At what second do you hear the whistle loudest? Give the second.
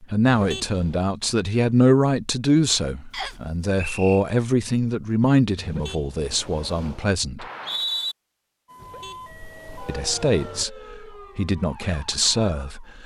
8 s.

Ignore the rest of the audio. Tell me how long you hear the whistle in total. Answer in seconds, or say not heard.
2 s.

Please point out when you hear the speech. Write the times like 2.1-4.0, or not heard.
0.0-7.5, 9.8-13.0.